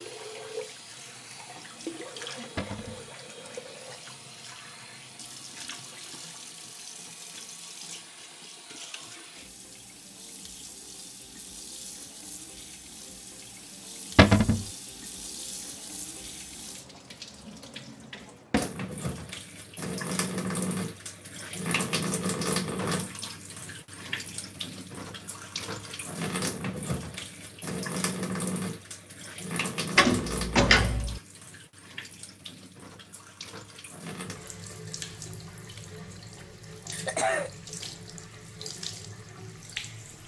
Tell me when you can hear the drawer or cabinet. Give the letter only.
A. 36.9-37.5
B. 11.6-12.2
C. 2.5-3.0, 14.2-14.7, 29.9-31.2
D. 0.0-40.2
C.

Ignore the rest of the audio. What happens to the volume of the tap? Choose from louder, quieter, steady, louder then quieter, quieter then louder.
louder then quieter.